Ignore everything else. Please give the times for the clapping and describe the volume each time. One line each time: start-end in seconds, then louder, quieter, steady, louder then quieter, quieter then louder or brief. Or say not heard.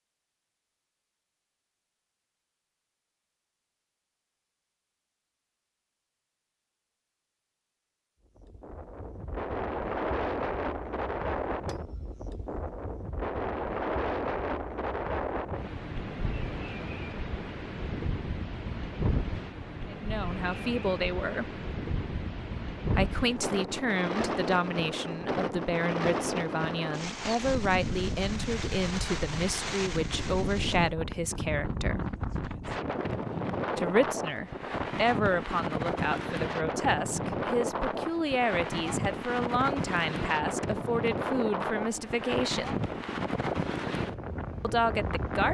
not heard.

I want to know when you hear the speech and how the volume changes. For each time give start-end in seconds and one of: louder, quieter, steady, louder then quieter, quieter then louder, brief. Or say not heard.
19.9-21.5 brief
22.9-32.0 steady
33.8-42.8 steady
44.6-45.5 brief.